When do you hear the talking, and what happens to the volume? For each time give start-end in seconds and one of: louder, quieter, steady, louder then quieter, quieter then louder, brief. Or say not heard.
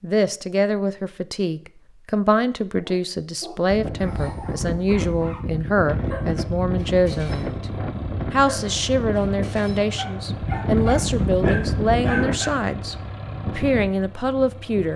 0.0-12.9 steady
13.6-14.9 brief.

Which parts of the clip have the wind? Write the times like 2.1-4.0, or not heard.
3.6-14.7.